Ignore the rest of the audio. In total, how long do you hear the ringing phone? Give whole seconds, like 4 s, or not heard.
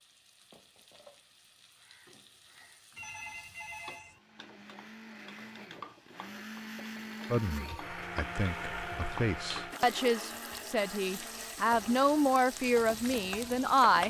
2 s.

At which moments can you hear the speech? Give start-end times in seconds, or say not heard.
7.3-14.0.